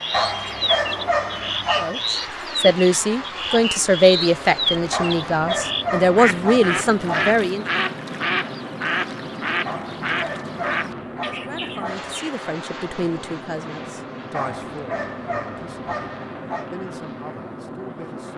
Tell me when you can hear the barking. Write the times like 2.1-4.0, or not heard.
0.1-2.0, 4.9-7.4, 9.7-12.2, 14.3-16.7.